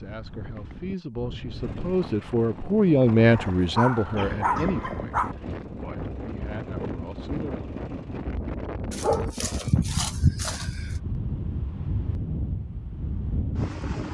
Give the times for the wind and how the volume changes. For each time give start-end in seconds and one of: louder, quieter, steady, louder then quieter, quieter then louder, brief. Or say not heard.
0.0-14.0 louder.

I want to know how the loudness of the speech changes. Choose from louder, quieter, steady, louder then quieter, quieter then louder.
louder then quieter.